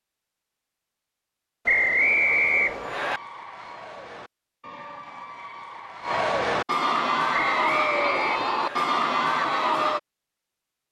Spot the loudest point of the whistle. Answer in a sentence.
The loudest moment of the whistle is at 2 seconds.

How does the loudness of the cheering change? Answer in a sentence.
The loudness of the cheering goes up.